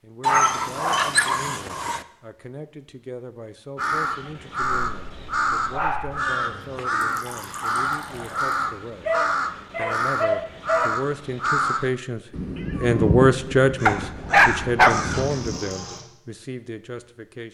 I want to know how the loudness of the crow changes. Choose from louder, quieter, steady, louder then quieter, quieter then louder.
steady.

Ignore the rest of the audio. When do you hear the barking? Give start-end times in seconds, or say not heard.
0.2-2.0, 4.8-6.2, 9.1-11.0, 13.8-15.2.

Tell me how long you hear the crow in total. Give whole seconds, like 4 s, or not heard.
12 s.